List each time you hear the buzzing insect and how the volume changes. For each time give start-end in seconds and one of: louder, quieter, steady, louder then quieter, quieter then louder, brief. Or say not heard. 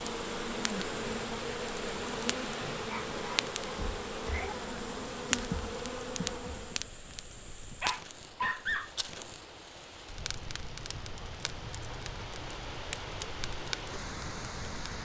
0.0-6.9 steady.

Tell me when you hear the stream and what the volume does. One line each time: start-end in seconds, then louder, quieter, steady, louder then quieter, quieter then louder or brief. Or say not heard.
0.0-15.0 quieter then louder.